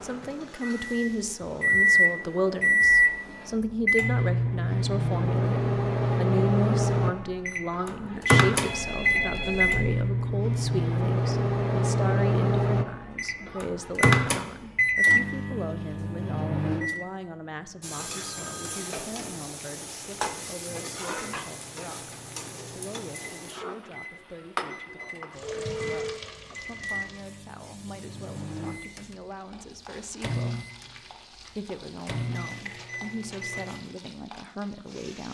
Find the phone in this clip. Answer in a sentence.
The phone can be heard from 8.6 to 9.9 s, from 17.8 to 18.9 s and from 25.4 to 26.2 s.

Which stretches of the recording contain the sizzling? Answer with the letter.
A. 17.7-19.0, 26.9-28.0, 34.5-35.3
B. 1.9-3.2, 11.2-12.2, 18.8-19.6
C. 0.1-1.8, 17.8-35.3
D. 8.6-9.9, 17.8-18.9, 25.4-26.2
C.